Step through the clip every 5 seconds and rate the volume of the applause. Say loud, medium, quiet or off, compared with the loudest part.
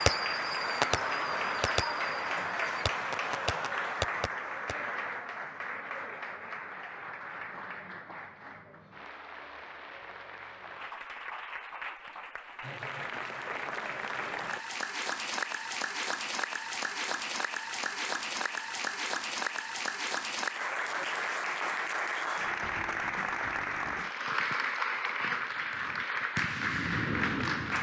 loud, medium, medium, loud, loud, loud.